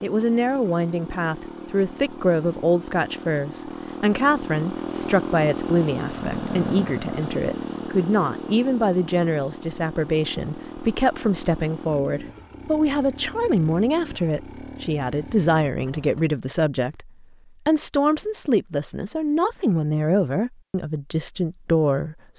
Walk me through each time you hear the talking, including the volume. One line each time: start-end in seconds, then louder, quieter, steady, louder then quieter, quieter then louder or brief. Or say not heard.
0.0-22.1 steady.